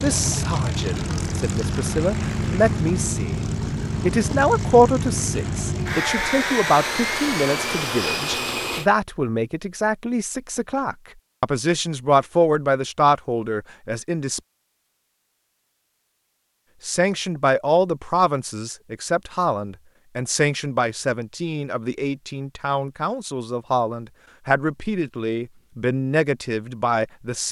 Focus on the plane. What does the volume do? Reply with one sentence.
The loudness of the plane stays about the same.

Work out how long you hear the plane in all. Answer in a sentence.
You can hear the plane for 9 seconds altogether.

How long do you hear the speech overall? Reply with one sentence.
You can hear the speech for 25 seconds altogether.